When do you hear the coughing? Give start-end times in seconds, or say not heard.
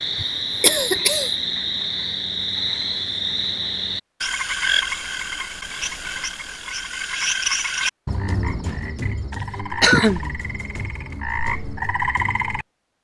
0.1-1.3, 9.3-10.3.